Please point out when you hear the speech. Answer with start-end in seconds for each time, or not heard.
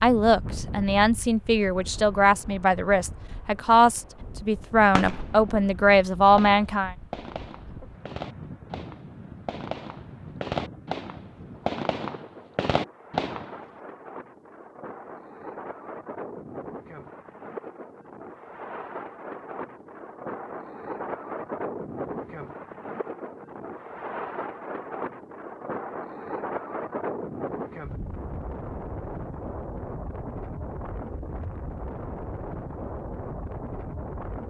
0.0-7.0.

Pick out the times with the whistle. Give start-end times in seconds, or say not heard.
not heard.